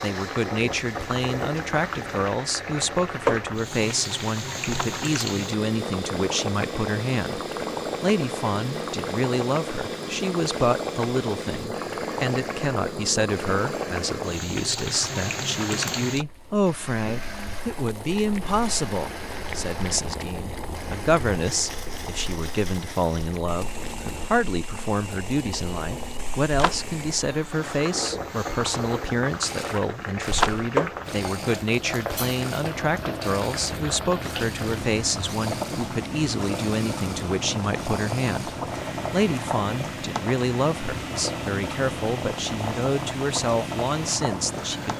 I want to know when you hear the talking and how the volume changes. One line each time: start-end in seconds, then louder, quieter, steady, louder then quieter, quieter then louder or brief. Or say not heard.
0.0-7.4 steady
8.0-38.5 steady
39.1-44.9 steady.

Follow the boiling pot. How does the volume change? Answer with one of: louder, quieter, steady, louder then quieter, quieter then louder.
quieter then louder.